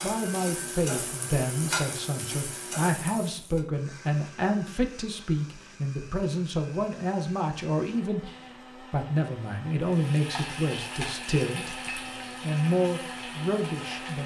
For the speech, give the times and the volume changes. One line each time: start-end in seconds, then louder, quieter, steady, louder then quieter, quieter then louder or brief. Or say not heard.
0.0-14.2 steady.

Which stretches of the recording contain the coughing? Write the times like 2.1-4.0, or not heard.
not heard.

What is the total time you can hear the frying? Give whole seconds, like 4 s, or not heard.
8 s.